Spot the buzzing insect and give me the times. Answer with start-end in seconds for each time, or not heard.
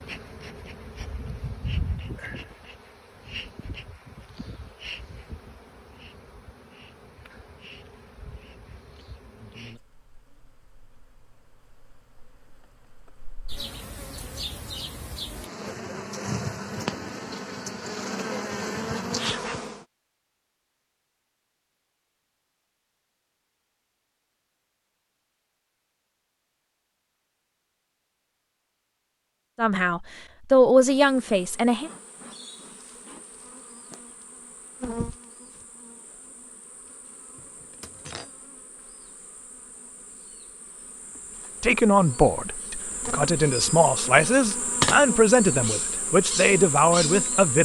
0.0-19.9, 30.9-47.6.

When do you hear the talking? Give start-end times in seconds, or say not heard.
29.6-31.9, 41.6-47.6.